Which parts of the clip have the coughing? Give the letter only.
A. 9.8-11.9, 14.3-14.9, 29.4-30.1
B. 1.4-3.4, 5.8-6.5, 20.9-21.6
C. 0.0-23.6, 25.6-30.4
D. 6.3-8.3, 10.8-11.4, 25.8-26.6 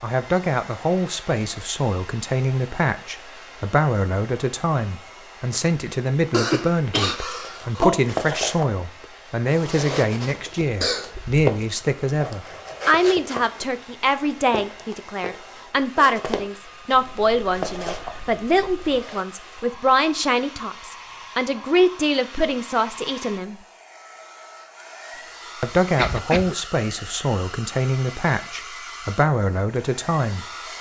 D.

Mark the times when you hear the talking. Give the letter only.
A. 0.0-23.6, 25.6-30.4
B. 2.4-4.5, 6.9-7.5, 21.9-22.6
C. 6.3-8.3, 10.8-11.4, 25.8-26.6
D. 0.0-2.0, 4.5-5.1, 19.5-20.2
A.